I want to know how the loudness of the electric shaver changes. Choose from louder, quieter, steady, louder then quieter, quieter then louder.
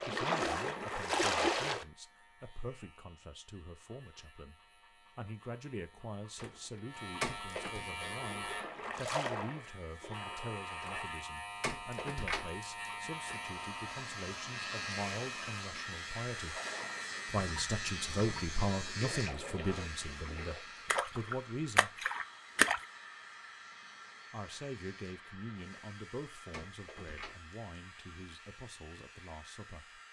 louder then quieter.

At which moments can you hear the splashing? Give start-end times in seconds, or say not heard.
0.0-1.9, 7.9-11.1, 16.4-22.9.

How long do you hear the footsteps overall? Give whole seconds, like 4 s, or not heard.
not heard.